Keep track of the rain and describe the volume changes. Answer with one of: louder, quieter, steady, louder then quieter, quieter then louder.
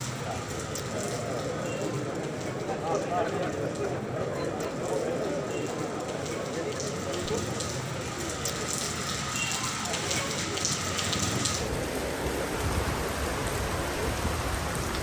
louder.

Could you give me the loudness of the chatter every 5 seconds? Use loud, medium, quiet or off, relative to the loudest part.
loud, loud, medium.